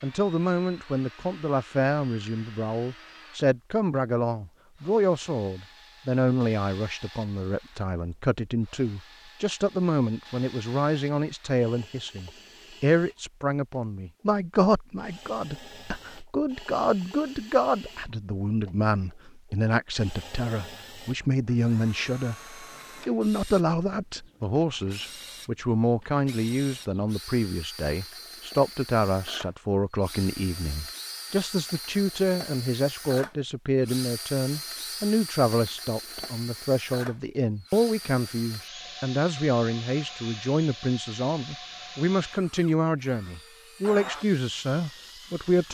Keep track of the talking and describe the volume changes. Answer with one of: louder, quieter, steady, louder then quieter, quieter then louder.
steady.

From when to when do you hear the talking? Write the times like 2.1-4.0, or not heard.
0.0-45.7.